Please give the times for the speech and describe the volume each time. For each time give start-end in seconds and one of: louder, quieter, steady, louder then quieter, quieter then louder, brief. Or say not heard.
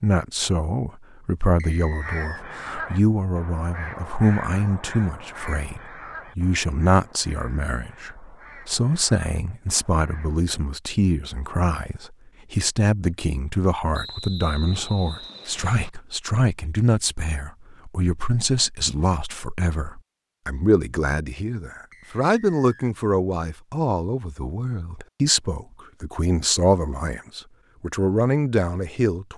0.0-29.3 steady.